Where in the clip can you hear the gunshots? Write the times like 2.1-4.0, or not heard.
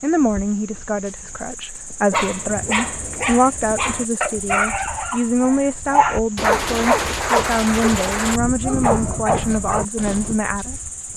6.3-8.4.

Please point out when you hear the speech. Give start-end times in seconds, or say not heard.
0.0-10.8.